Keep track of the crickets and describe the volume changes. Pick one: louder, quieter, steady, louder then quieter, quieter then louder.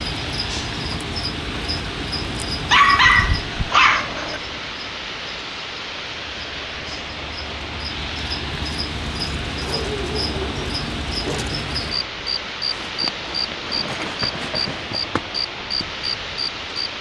quieter then louder.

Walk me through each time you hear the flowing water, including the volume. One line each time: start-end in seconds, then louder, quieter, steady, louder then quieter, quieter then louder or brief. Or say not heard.
0.0-16.9 steady.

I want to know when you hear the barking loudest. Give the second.
3 s.